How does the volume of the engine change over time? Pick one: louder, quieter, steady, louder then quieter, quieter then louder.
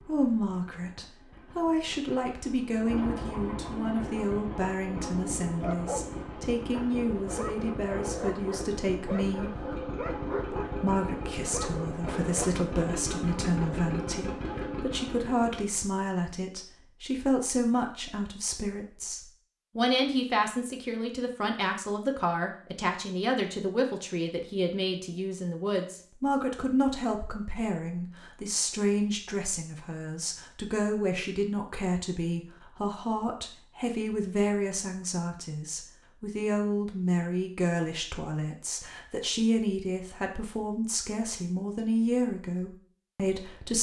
louder.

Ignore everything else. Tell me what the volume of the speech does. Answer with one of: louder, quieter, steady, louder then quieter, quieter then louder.
steady.